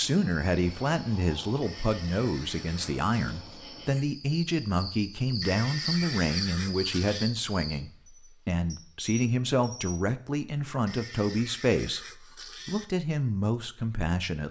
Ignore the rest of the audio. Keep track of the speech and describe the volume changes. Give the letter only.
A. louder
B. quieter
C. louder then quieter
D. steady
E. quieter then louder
D.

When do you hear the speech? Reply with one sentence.
You can hear the speech from 0.0 to 14.4 s.